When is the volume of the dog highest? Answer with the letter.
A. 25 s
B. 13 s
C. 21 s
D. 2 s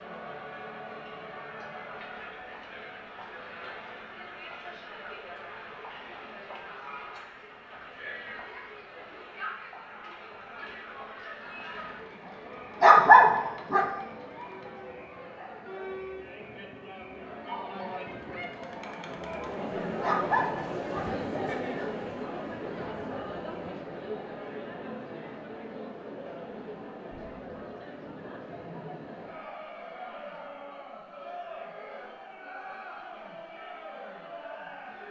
B.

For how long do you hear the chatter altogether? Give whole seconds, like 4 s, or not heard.
35 s.